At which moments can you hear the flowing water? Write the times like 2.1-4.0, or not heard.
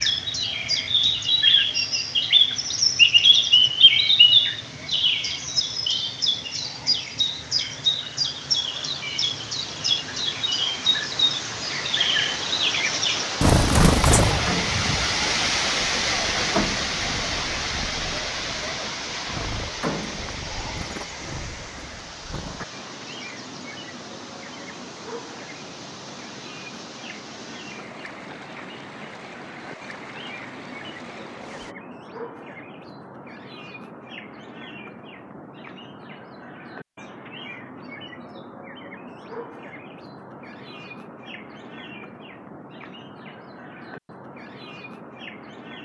0.0-31.8.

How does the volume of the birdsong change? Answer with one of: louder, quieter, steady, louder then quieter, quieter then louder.
quieter.